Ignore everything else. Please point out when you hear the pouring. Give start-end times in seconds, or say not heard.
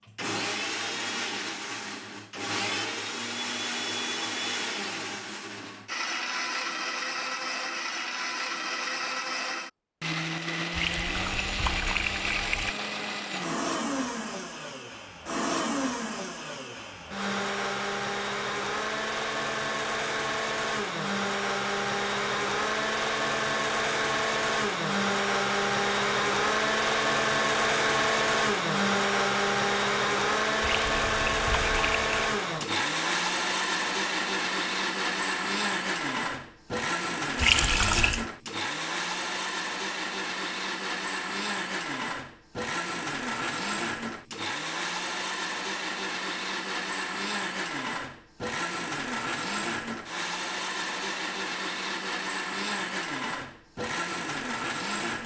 10.7-12.8, 30.6-32.1, 37.4-38.2.